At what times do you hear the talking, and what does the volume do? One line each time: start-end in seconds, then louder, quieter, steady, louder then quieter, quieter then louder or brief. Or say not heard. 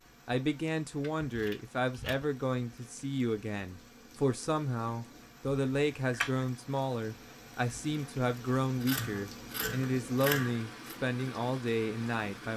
0.2-12.5 steady.